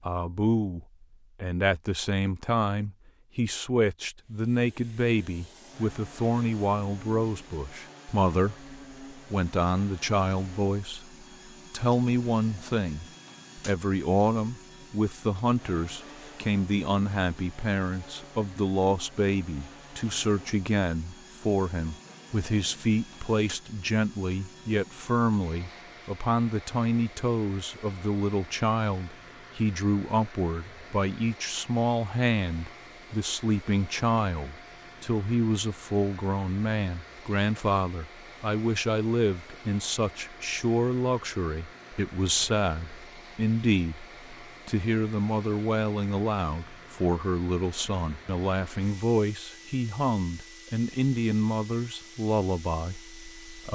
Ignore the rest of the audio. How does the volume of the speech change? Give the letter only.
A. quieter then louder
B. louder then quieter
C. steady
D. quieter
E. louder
C.